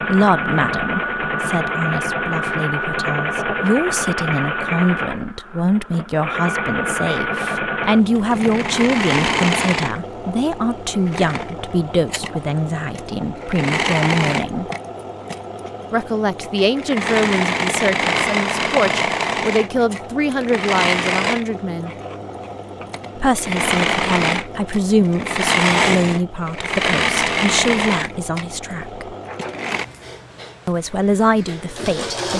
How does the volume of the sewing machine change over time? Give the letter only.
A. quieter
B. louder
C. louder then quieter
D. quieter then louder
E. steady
E.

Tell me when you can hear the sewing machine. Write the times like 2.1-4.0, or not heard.
0.0-32.3.